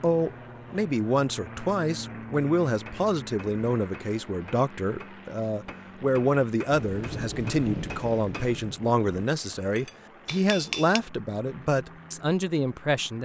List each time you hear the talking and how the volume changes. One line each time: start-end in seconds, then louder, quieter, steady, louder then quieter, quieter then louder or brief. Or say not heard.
0.0-13.1 steady.